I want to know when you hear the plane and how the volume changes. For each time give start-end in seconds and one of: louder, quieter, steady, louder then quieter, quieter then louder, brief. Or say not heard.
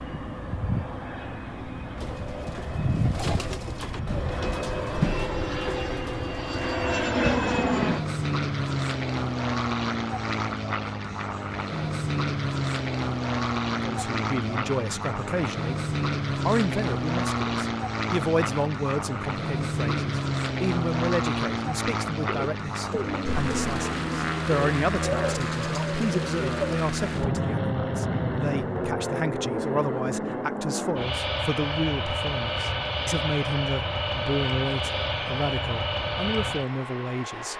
0.0-37.5 steady.